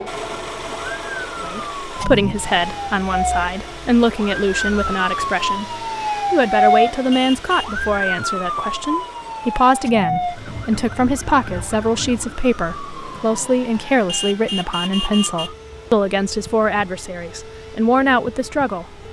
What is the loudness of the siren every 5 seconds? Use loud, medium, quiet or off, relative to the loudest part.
loud, loud, medium, quiet.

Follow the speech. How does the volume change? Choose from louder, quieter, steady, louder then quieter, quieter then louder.
steady.